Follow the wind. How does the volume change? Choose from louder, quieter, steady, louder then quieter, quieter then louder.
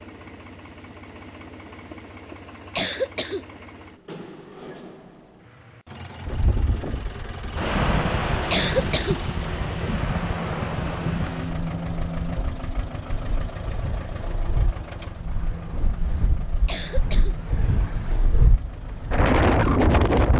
quieter then louder.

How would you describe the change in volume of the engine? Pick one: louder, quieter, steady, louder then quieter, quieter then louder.
louder then quieter.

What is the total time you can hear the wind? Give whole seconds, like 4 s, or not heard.
14 s.